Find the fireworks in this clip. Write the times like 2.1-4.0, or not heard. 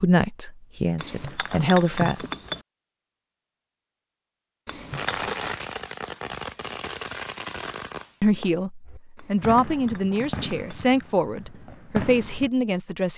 4.9-12.5.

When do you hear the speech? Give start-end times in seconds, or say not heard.
0.0-2.3, 8.2-13.1.